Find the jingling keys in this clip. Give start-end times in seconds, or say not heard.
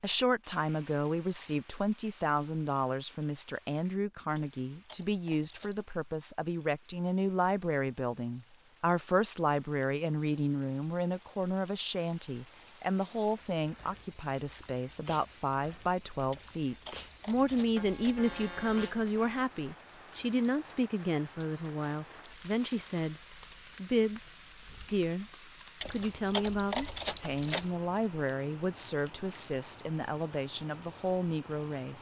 4.3-5.9, 16.3-18.3, 25.8-27.7.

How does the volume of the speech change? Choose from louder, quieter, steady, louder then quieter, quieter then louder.
steady.